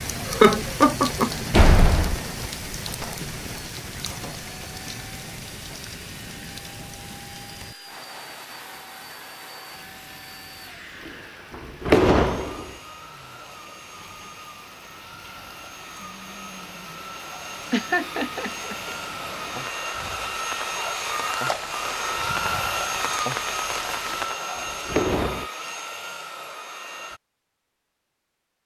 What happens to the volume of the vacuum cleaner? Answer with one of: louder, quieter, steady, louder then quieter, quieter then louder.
louder.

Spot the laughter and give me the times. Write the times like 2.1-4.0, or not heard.
0.2-1.4, 17.7-18.9.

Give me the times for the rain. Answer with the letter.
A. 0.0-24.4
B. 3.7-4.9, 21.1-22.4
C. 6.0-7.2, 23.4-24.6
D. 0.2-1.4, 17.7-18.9
A.